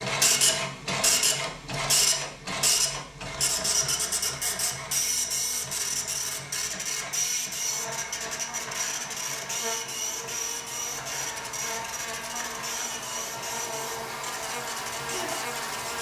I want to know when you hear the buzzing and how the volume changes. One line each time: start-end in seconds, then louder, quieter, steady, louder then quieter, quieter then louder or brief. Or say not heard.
7.5-15.9 louder.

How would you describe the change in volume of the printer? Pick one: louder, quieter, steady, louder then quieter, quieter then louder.
quieter.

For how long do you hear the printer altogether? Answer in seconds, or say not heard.
16 s.